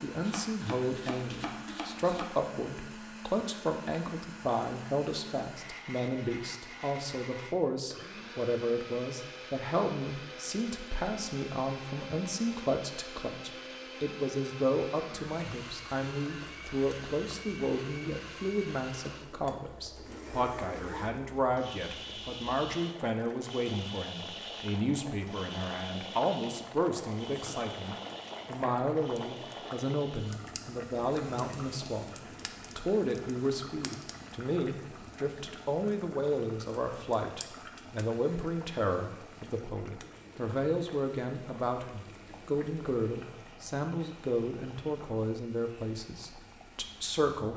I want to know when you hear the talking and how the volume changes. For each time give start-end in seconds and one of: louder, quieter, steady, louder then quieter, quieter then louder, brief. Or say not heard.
0.0-47.5 steady.